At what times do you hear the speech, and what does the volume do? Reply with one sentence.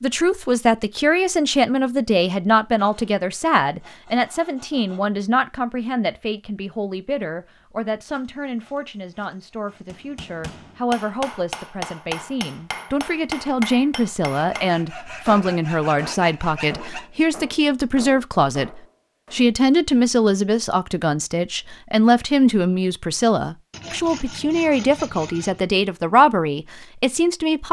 You can hear the speech from 0.0 to 27.6 s, getting quieter then louder.